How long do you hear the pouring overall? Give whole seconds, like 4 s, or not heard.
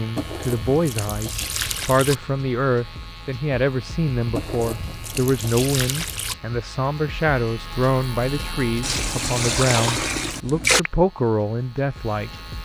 6 s.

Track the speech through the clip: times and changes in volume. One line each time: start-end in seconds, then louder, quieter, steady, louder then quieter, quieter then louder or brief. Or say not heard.
0.0-12.3 steady.